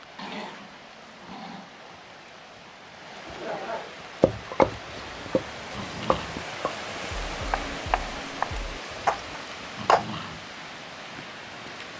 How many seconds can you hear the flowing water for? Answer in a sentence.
You can hear the flowing water for 12 seconds altogether.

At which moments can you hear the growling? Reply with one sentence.
The growling can be heard from 0.1 to 1.7 s, from 5.1 to 6.5 s and from 9.1 to 10.5 s.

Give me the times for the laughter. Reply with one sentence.
The laughter can be heard from 3.2 to 3.9 s.